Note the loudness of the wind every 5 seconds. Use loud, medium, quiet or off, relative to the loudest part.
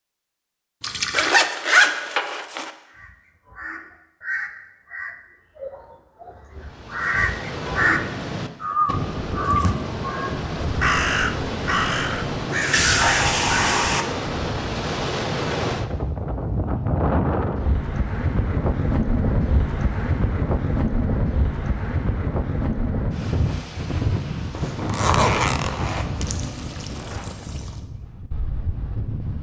off, medium, loud, loud, loud, medium.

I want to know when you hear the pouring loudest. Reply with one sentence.
The volume of the pouring peaks at 13 seconds.